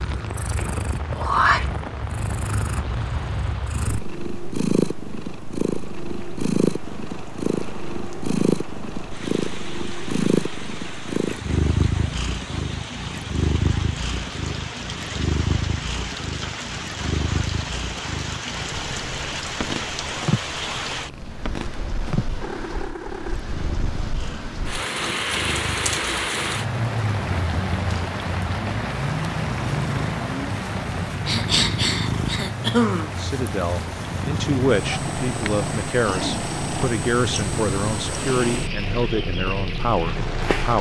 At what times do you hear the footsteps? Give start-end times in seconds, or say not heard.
not heard.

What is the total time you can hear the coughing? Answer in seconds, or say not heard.
2 s.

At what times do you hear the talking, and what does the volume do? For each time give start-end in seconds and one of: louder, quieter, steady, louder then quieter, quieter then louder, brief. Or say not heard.
33.1-40.7 steady.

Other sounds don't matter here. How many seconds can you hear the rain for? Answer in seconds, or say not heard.
41 s.